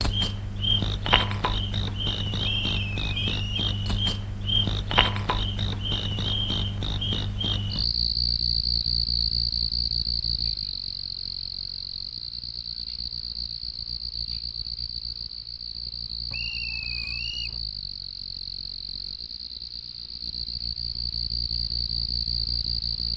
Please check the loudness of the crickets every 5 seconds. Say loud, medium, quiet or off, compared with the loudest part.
loud, loud, medium, medium, loud.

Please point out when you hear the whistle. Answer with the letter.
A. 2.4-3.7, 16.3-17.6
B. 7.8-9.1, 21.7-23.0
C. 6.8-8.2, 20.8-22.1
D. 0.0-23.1
A.